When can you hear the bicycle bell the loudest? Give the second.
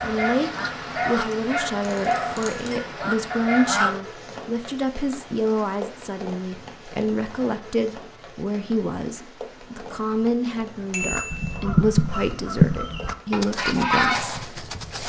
11 s.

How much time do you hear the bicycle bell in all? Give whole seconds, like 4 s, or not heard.
2 s.